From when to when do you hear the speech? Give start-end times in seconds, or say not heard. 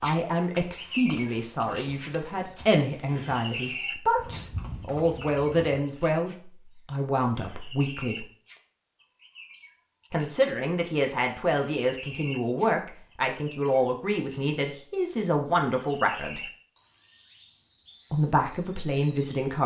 0.0-8.2, 10.1-16.5, 18.1-19.6.